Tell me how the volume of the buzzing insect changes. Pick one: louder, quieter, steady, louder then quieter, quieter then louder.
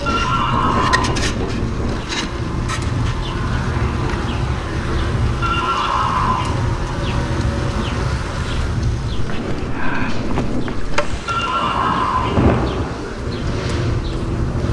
steady.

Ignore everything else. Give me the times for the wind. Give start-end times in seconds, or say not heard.
0.0-14.6.